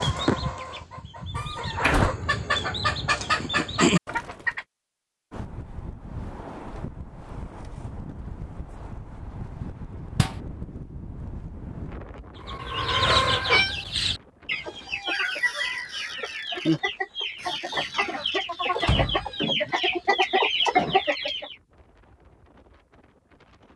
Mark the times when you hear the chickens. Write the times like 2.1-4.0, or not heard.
0.0-4.7, 12.4-21.6.